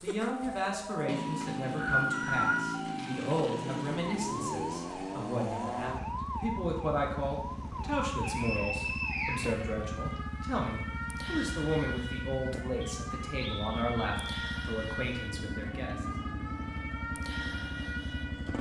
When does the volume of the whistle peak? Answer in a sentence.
The loudest moment of the whistle is at 2 seconds.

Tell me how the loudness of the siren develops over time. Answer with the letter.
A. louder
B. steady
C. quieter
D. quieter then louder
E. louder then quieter
B.